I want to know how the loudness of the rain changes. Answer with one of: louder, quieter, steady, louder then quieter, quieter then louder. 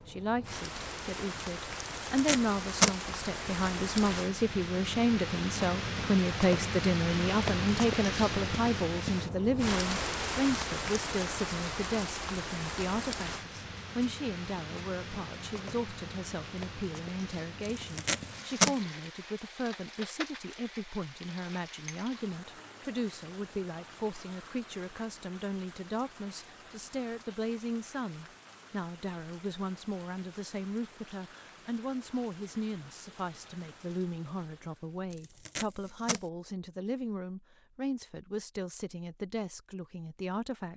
quieter.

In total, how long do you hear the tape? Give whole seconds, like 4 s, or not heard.
3 s.